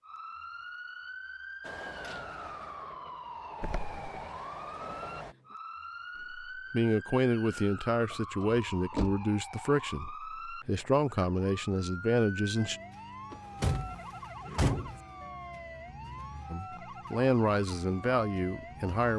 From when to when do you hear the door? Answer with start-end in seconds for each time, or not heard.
3.6-4.2, 7.9-9.2, 13.3-15.0.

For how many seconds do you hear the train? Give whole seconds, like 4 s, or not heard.
4 s.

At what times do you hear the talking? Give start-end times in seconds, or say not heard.
6.5-12.8, 16.5-19.1.